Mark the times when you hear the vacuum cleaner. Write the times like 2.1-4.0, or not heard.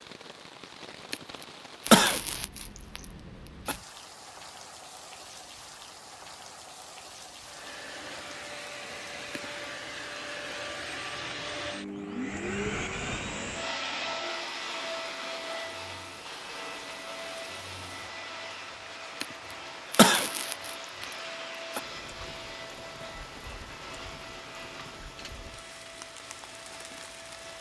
7.4-27.5.